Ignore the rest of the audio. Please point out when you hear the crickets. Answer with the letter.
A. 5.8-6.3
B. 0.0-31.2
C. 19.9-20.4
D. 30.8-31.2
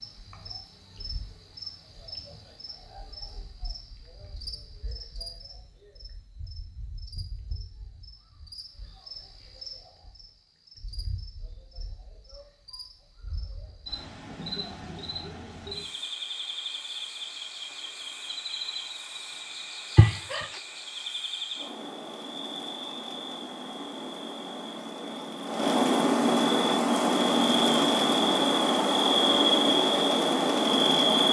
B.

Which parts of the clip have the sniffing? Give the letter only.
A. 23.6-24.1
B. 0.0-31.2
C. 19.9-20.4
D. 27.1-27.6
C.